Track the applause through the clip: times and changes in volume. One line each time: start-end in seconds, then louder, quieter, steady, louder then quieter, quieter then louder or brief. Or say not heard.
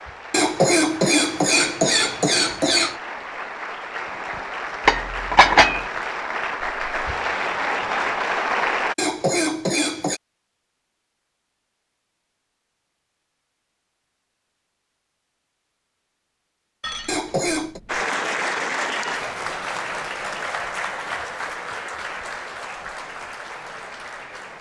0.0-8.9 louder
17.9-24.5 quieter.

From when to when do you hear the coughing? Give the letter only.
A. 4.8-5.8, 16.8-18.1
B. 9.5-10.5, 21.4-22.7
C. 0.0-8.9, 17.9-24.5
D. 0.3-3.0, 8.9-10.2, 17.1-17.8
D.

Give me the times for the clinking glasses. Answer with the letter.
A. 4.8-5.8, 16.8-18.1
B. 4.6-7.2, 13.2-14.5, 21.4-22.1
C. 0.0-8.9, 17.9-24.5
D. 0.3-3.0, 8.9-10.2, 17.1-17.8
A.